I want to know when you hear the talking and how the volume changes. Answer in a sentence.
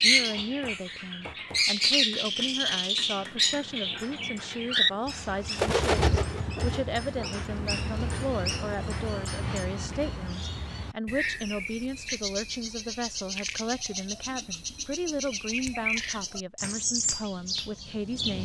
You can hear the talking from 0.0 to 18.4 s, at a steady volume.